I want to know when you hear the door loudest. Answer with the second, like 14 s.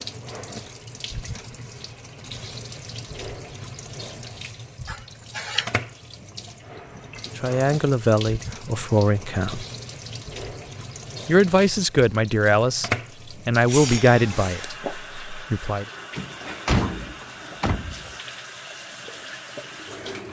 17 s.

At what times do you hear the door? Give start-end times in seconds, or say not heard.
16.1-18.1.